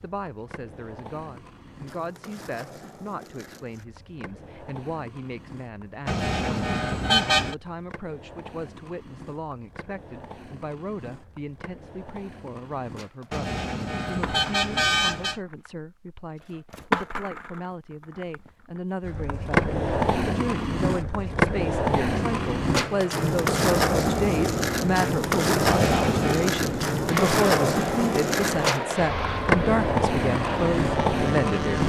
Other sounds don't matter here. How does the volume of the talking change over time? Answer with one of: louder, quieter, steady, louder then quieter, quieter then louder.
louder.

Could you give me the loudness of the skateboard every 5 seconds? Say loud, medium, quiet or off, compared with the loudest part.
quiet, quiet, quiet, loud, loud, loud, loud.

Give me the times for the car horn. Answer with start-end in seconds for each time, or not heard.
6.0-7.5, 13.3-15.4, 25.6-26.5.